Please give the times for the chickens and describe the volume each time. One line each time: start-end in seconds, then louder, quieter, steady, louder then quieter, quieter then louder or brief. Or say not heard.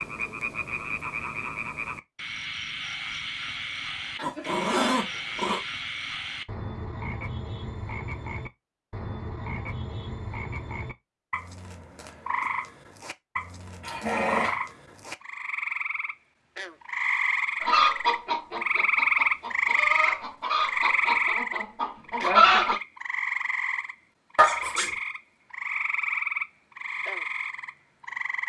17.6-22.8 quieter then louder.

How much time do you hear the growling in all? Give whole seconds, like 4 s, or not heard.
3 s.